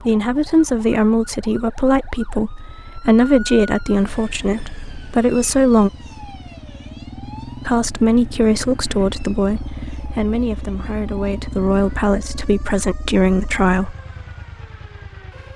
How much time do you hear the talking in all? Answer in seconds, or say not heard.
12 s.